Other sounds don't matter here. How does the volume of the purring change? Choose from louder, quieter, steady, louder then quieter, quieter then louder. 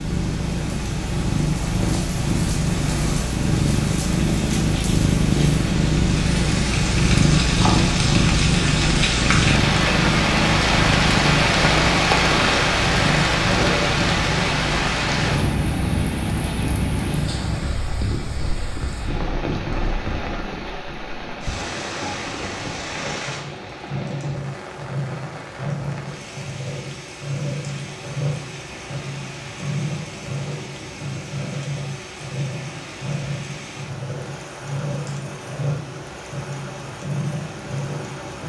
quieter.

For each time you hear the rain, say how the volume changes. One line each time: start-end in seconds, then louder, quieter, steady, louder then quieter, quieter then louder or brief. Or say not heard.
0.0-38.4 louder then quieter.